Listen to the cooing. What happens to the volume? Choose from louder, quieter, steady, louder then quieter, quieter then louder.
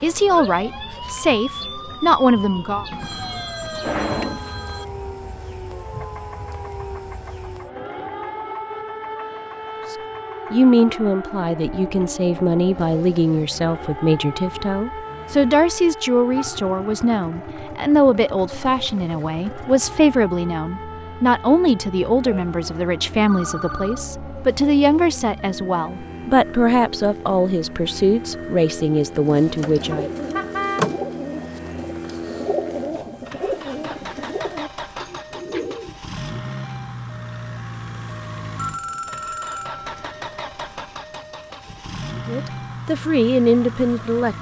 quieter.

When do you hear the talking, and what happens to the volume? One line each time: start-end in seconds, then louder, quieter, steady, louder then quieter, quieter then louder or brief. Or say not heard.
0.0-2.9 brief
9.9-30.1 steady
42.2-44.3 brief.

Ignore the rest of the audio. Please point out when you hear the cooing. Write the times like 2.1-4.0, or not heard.
29.2-36.0.